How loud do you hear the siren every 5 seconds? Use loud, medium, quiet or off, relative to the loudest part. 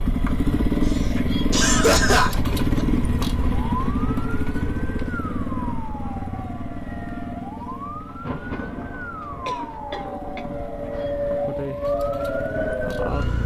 medium, medium, loud.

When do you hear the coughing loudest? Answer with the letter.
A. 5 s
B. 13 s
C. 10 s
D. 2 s
D.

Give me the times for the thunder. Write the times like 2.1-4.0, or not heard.
8.1-11.5.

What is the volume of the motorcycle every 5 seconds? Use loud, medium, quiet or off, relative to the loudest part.
loud, medium, quiet.